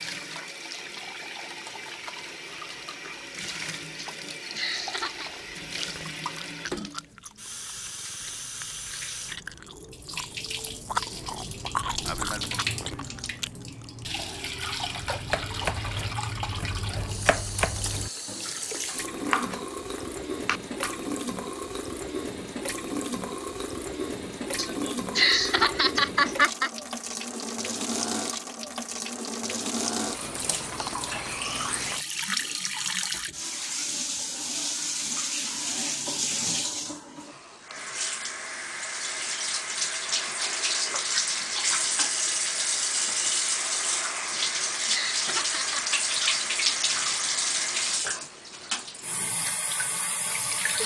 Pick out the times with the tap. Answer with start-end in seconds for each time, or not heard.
0.0-50.8.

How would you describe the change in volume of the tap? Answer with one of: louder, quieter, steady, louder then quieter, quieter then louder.
louder.